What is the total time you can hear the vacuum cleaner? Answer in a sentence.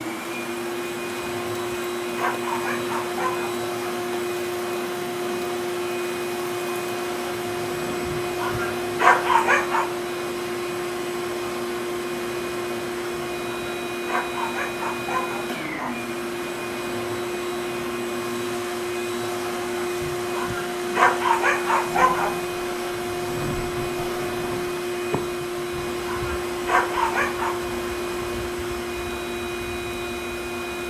You can hear the vacuum cleaner for 31 seconds altogether.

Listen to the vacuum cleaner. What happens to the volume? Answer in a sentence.
The loudness of the vacuum cleaner stays about the same.